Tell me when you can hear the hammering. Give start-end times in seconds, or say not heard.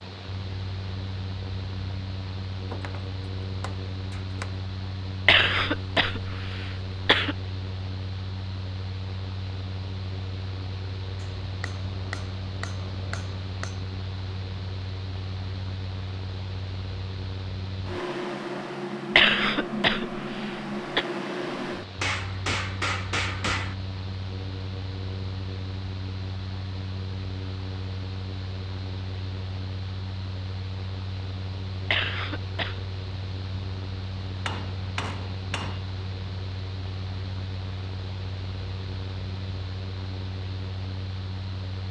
2.7-4.7, 11.2-13.8, 22.0-23.8, 34.2-35.8.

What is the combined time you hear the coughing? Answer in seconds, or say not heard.
5 s.